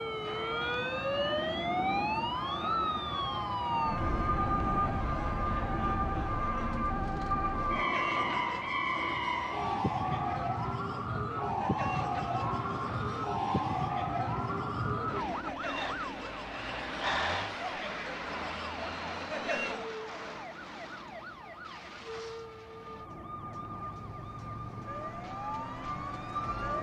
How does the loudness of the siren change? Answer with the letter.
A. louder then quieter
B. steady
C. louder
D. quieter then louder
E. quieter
E.